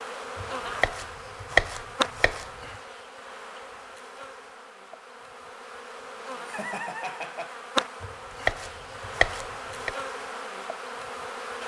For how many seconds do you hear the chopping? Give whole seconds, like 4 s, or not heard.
4 s.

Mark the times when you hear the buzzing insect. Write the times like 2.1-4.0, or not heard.
0.0-11.6.